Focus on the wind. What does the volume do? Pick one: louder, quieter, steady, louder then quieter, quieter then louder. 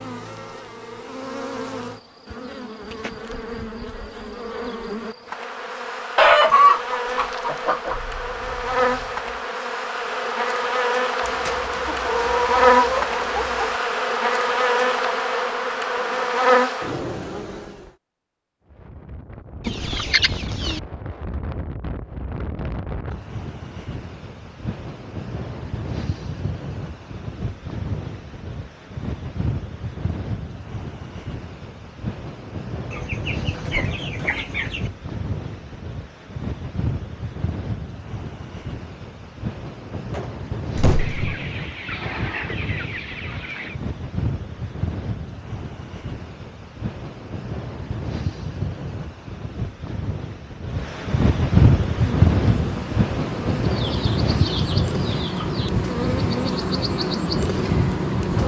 louder.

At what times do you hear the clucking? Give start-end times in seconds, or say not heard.
6.2-8.0, 11.2-13.8, 19.6-20.8, 32.9-34.9, 41.0-43.8, 53.7-55.7.